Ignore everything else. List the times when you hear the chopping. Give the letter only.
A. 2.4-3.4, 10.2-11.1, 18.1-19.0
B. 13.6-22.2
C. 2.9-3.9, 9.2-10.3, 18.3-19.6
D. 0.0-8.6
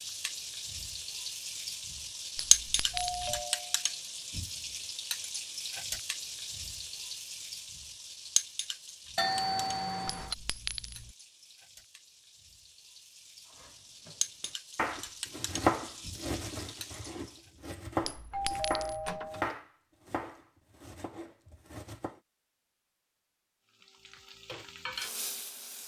B.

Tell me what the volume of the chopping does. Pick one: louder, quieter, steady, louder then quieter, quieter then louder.
louder then quieter.